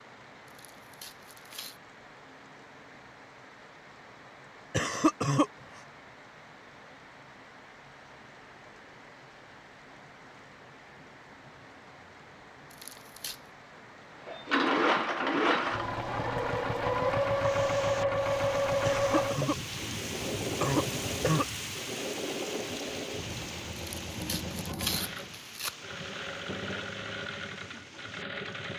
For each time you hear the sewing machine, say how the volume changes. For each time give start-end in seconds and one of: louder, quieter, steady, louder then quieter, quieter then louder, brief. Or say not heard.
14.2-28.7 quieter.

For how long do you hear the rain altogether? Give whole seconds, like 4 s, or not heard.
29 s.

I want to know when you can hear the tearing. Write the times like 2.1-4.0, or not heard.
0.5-1.8, 12.7-13.4, 23.8-25.8.